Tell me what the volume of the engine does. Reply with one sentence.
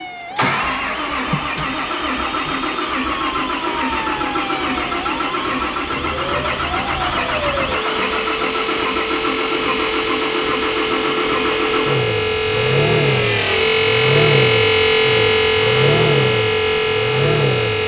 The loudness of the engine stays about the same.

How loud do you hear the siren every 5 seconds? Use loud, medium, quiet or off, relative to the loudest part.
quiet, medium, loud, loud.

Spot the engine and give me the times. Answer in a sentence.
You can hear the engine from 0.1 to 17.8 s.